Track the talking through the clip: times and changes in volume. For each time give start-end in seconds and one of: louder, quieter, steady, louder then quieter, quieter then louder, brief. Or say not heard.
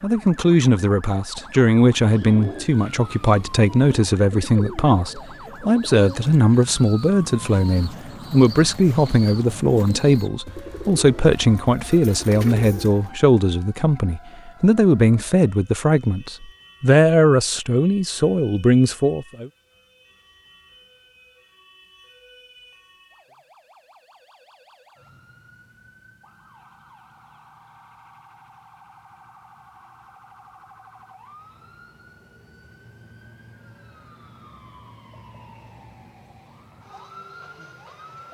0.0-19.5 steady.